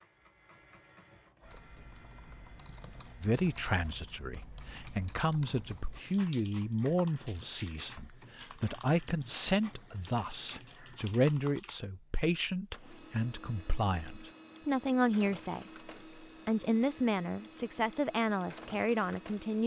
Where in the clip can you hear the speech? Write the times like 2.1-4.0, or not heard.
3.2-19.6.